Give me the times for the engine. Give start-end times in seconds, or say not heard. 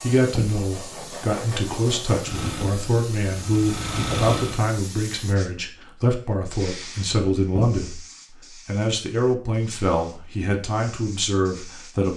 2.2-4.6.